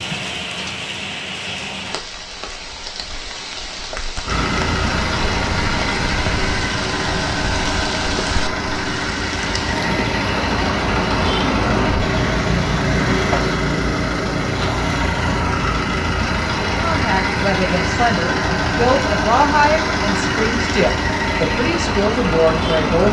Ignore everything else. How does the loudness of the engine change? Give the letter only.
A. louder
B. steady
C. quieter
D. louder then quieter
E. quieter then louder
B.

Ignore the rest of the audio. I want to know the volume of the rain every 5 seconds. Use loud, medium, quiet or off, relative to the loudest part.
loud, loud, loud, off, off.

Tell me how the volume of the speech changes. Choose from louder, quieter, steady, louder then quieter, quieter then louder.
steady.